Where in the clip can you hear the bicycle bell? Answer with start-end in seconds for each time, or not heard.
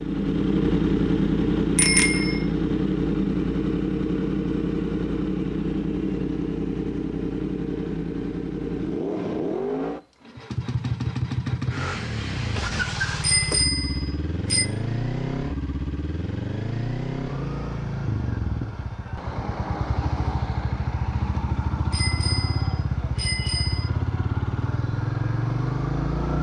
1.8-2.4, 13.2-14.7, 21.9-23.9.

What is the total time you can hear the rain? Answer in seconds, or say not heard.
not heard.